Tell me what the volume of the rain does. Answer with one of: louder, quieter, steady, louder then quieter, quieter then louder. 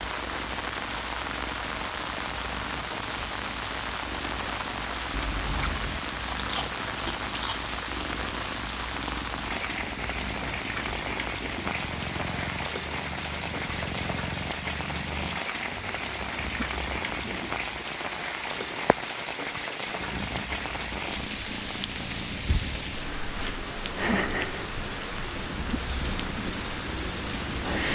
steady.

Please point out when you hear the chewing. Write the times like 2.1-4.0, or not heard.
5.1-7.6.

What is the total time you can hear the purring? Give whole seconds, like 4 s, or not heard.
28 s.